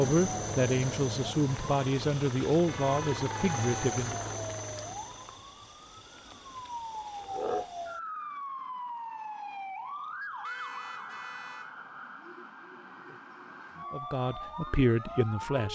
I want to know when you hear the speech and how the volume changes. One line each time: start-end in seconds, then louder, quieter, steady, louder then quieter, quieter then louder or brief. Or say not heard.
0.0-4.3 steady
13.9-15.7 brief.